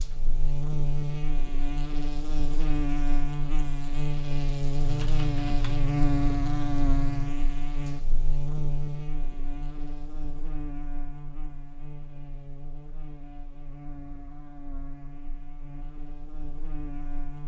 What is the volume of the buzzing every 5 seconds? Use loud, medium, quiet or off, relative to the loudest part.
loud, loud, quiet, quiet.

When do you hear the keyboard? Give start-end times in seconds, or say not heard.
4.8-7.3.